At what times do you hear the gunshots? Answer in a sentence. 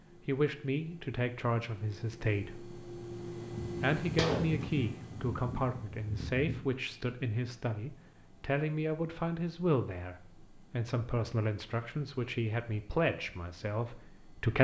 The gunshots can be heard from 3.5 to 6.7 s.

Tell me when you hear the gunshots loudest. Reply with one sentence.
The volume of the gunshots peaks at 4 seconds.